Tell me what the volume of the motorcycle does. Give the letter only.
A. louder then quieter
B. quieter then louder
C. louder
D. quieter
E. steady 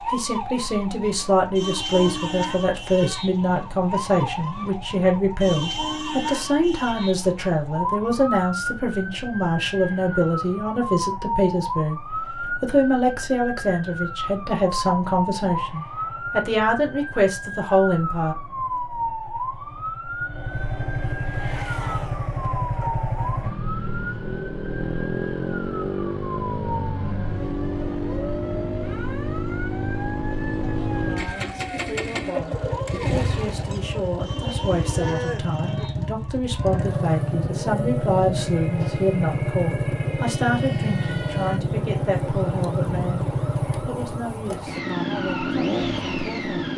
C.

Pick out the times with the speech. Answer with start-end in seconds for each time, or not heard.
0.0-12.0, 12.6-18.4, 31.1-46.7.